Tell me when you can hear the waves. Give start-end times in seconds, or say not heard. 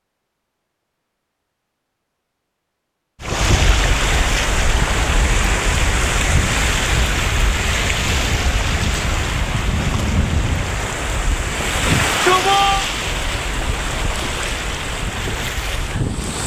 3.2-16.4.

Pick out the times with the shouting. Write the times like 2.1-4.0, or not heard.
11.8-12.8.